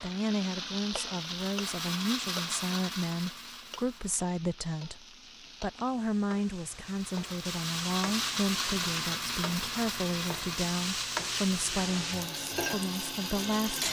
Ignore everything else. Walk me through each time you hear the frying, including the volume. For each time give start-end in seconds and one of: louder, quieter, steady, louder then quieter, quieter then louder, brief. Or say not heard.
0.0-13.8 quieter then louder.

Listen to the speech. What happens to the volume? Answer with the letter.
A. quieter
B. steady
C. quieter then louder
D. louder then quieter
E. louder
B.